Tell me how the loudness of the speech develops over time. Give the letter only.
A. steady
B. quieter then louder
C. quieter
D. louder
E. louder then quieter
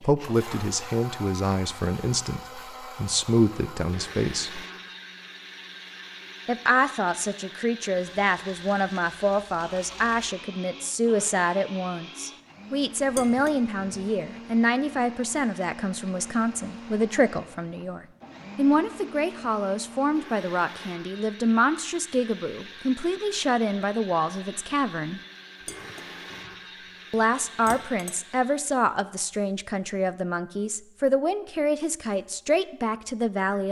A.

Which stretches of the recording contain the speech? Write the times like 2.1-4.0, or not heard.
0.0-4.7, 6.5-25.2, 27.1-33.6.